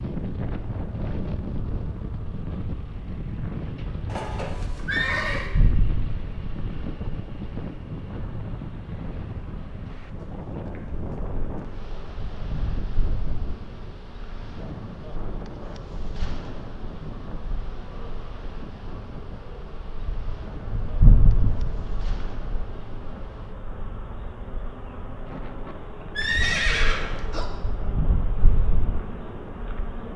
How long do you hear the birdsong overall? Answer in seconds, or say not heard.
not heard.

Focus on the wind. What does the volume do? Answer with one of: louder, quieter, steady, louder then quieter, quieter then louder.
quieter.